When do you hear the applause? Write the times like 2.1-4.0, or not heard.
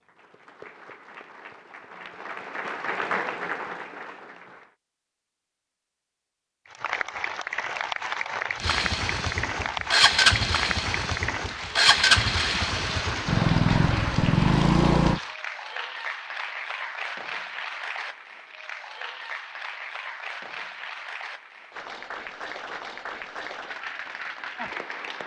0.0-4.8, 6.7-25.2.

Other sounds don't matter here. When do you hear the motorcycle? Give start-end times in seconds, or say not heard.
8.6-15.2.